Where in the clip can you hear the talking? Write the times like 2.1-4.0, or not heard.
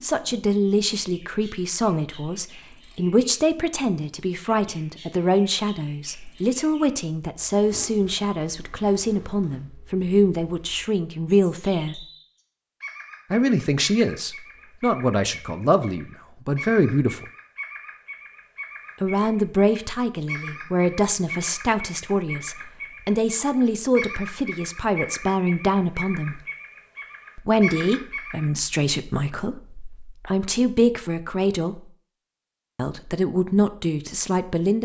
0.0-12.1, 13.3-17.2, 19.0-26.4, 27.4-31.9, 32.8-34.8.